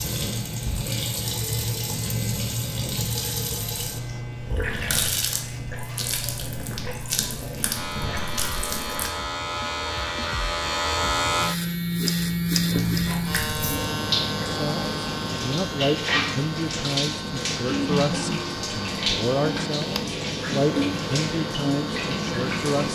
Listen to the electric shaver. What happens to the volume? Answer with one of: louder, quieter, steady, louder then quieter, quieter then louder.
louder then quieter.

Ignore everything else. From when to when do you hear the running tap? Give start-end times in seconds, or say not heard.
0.0-9.2, 12.7-22.9.